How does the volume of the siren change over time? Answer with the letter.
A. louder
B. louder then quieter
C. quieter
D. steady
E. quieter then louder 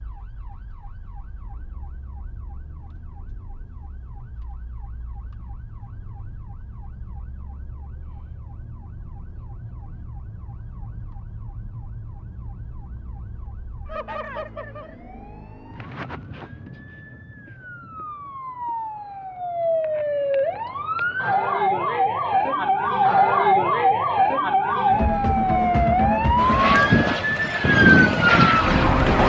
A.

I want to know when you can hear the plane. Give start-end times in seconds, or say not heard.
26.4-29.2.